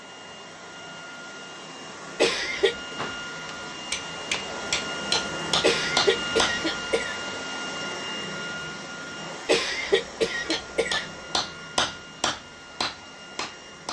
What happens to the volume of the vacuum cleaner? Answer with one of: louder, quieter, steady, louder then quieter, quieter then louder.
louder then quieter.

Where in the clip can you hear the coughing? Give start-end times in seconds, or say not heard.
2.1-3.0, 5.6-7.2, 9.4-11.1.